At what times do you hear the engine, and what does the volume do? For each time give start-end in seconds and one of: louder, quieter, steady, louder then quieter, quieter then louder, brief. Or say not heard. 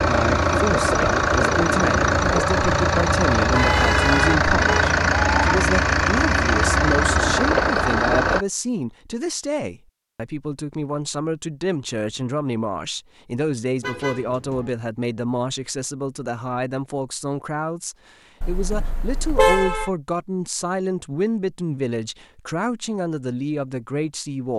0.0-8.4 steady.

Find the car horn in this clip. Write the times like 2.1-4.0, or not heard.
3.5-5.5, 13.8-14.7, 18.4-19.9.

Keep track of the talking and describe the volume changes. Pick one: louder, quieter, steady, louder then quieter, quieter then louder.
steady.